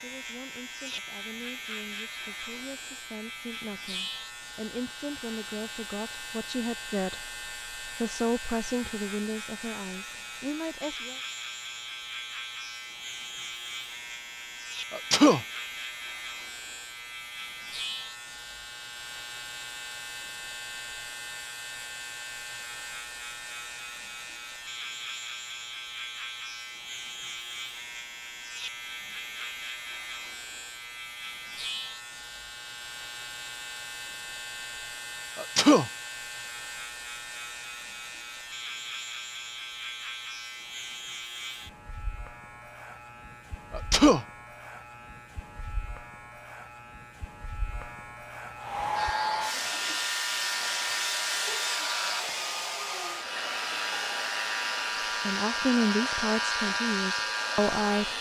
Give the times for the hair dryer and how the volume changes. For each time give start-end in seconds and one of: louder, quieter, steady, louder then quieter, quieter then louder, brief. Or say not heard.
48.5-58.1 quieter.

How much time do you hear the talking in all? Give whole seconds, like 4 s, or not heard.
14 s.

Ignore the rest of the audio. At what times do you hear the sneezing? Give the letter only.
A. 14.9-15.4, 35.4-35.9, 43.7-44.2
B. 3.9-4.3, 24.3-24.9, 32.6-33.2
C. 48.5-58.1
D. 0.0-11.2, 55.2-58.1
A.